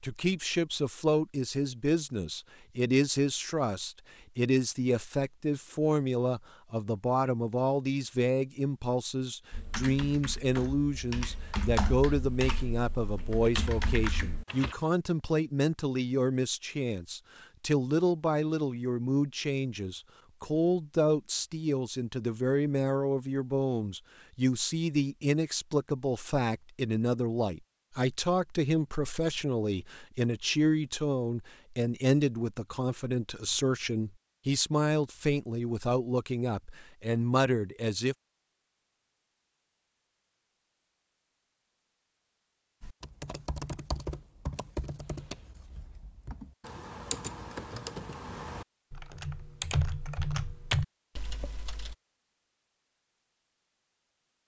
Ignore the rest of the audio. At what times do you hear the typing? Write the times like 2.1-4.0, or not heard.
9.5-14.8, 42.8-52.0.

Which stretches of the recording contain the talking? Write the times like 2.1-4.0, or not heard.
0.0-38.1.